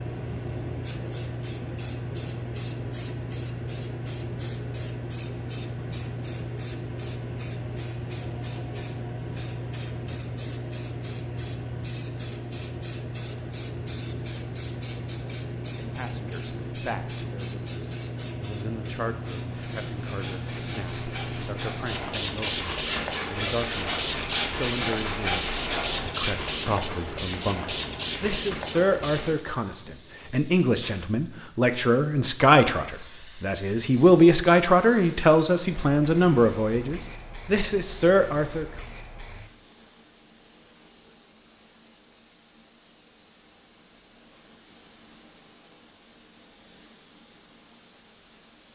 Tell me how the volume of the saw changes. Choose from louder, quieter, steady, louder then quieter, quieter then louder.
louder.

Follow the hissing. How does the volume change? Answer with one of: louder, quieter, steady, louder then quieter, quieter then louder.
quieter.